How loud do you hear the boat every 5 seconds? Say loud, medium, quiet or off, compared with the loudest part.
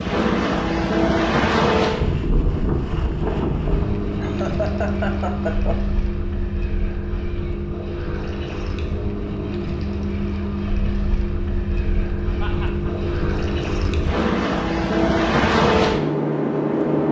loud, medium, medium, loud.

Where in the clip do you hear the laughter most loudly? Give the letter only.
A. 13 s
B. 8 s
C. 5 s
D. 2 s
C.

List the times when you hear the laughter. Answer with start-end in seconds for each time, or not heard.
4.2-5.9, 12.4-13.1.